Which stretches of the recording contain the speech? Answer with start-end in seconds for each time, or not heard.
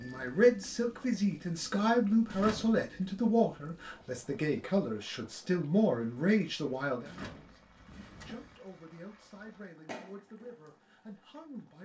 0.0-11.7.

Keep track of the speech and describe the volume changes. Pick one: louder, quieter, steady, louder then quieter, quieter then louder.
quieter.